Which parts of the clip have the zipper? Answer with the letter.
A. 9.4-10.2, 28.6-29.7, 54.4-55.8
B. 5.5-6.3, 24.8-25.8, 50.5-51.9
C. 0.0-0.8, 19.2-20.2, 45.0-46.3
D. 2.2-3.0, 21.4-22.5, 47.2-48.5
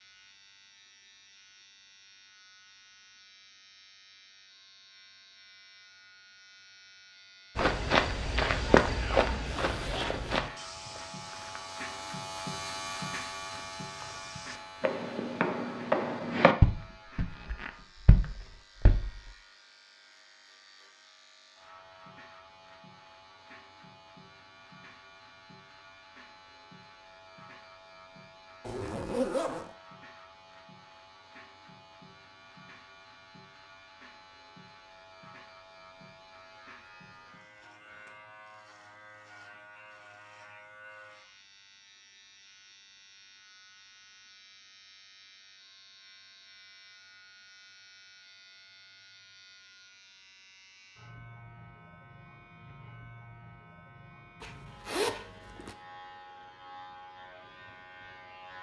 A.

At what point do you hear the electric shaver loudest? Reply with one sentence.
The volume of the electric shaver peaks at 13 seconds.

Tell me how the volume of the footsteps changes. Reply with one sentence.
The loudness of the footsteps goes down, then up.